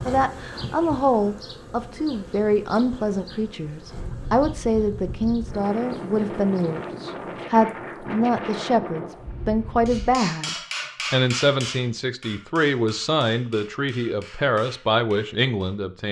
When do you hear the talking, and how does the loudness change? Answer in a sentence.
You can hear the talking from 0.1 to 16.0 s, at a steady volume.